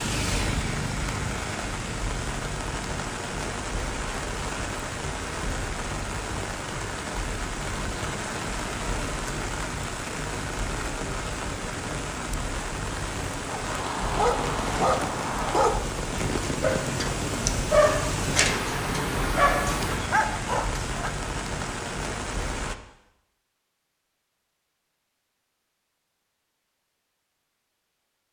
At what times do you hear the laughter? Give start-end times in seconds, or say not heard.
not heard.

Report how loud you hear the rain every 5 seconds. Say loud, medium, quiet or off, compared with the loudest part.
loud, loud, loud, loud, loud, off.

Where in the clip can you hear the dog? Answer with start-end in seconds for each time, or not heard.
13.4-21.1.